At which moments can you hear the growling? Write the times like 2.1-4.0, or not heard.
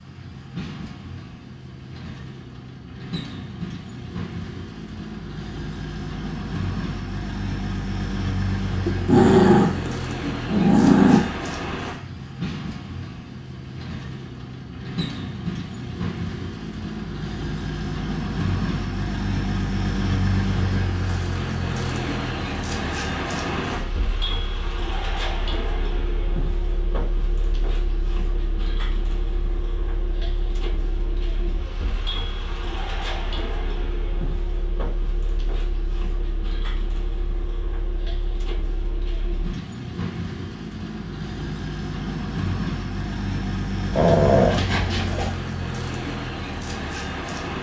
8.8-11.4, 43.9-45.4.